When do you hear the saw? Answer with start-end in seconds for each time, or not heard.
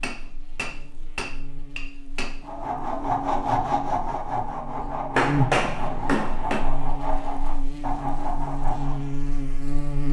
2.4-9.1.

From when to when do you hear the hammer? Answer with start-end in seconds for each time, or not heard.
0.0-2.4, 5.2-6.7.